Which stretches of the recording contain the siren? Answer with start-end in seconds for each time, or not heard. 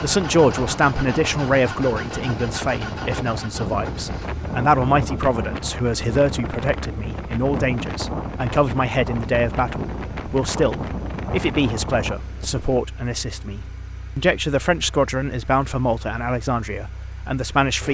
not heard.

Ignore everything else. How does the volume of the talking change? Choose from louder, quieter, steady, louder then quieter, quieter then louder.
steady.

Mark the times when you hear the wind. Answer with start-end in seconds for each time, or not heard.
0.0-12.8.